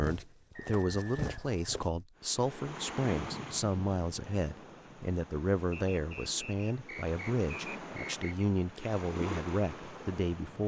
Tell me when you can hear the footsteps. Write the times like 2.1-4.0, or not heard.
0.0-1.9.